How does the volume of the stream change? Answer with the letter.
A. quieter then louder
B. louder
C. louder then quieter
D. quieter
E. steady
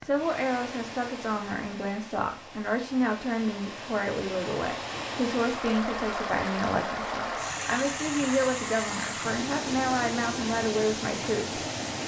B.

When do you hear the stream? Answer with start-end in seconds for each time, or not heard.
0.0-12.0.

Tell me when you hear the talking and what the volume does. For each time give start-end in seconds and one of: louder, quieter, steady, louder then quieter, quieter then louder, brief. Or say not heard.
0.0-11.7 steady.